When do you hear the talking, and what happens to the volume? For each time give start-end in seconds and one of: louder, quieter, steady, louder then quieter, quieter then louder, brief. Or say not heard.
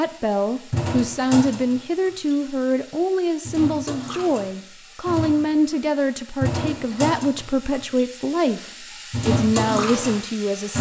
0.0-10.7 steady.